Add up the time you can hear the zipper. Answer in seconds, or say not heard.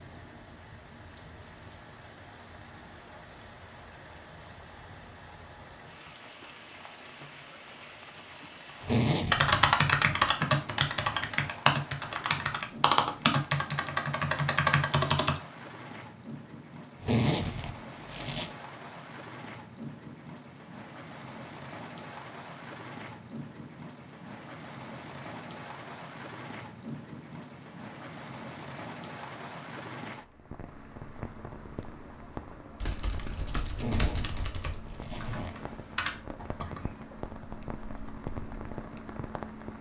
4 s.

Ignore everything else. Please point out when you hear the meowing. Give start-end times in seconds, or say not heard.
not heard.